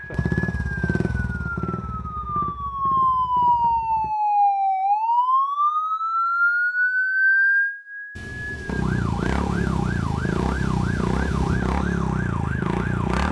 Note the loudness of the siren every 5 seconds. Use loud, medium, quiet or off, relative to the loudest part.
loud, loud, quiet.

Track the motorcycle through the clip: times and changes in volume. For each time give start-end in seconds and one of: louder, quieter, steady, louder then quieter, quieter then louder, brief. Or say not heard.
0.0-4.1 quieter
8.7-13.2 steady.